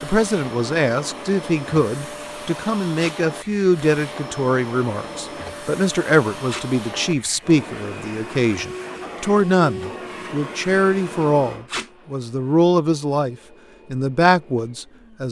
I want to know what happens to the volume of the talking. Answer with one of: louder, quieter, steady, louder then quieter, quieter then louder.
steady.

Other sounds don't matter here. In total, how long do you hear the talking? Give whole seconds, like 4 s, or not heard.
15 s.